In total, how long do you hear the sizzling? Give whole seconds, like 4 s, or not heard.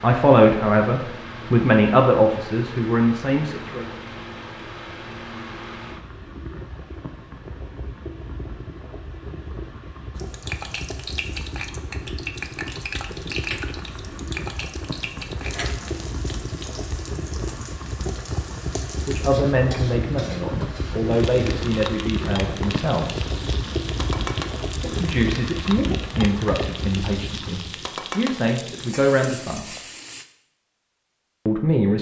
20 s.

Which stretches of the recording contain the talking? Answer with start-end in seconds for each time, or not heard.
0.0-3.9, 19.0-23.2, 24.8-29.7, 31.4-31.9.